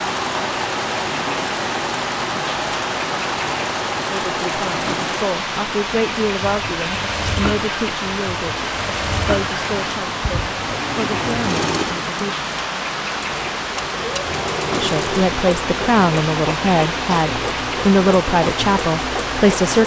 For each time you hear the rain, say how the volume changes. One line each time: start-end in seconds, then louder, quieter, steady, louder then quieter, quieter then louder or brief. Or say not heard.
0.0-19.8 steady.